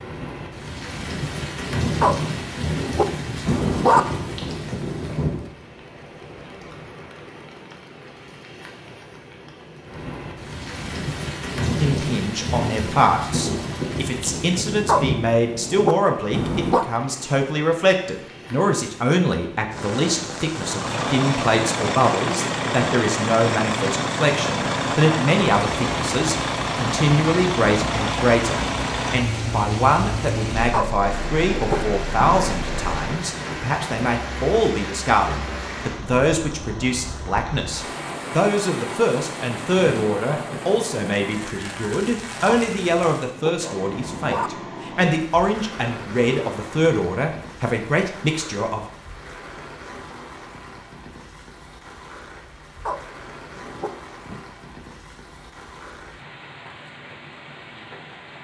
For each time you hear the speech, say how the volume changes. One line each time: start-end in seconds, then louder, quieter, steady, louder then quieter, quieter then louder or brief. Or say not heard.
11.6-48.9 steady.